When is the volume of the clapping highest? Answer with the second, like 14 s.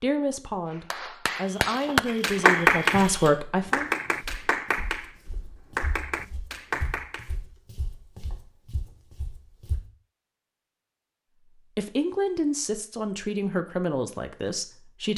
3 s.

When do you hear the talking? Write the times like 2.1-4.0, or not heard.
0.0-3.9, 11.8-15.1.